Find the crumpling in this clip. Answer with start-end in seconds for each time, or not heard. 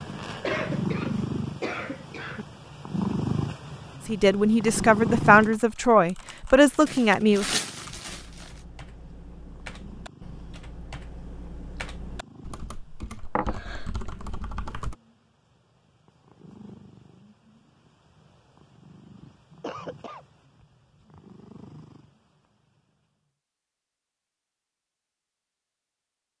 6.8-8.5.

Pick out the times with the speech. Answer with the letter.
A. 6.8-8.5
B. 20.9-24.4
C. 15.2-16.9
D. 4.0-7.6
D.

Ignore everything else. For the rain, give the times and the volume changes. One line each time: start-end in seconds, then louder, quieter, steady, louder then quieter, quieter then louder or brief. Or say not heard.
not heard.